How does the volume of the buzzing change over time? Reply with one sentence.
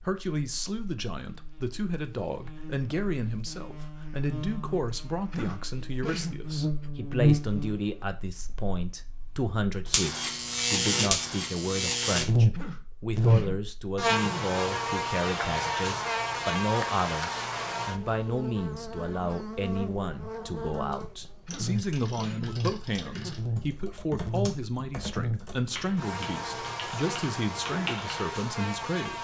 The volume of the buzzing goes up, then down.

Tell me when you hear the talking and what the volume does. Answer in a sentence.
The talking can be heard from 0.0 to 29.1 s, at a steady volume.